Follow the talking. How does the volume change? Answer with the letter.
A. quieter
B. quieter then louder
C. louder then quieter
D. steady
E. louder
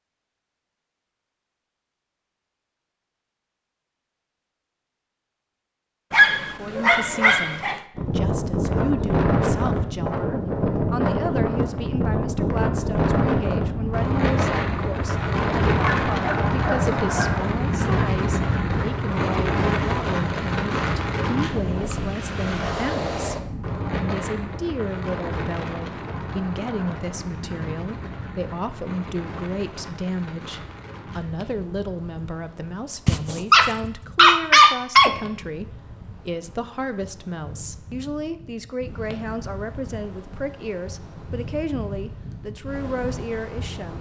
D.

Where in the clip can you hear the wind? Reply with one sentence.
The wind can be heard from 8.0 to 43.9 s.